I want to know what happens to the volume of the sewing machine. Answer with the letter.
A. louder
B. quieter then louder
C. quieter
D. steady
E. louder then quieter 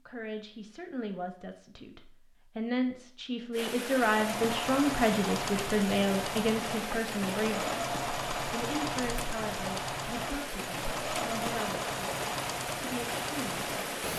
D.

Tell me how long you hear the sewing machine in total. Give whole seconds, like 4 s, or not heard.
10 s.